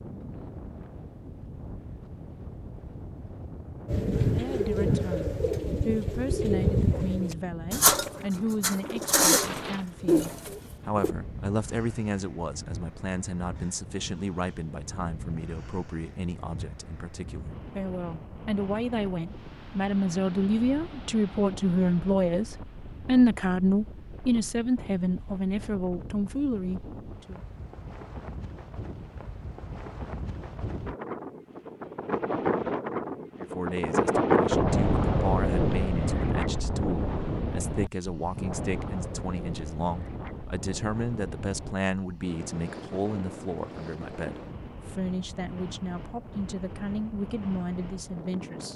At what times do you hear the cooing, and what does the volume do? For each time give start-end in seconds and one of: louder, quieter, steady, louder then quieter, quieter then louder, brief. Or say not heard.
3.9-11.2 steady.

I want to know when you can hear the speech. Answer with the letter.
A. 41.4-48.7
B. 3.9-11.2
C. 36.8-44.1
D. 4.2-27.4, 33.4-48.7
D.